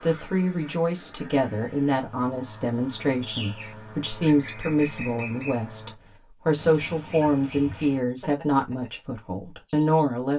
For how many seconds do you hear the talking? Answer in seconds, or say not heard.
10 s.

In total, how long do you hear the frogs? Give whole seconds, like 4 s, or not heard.
not heard.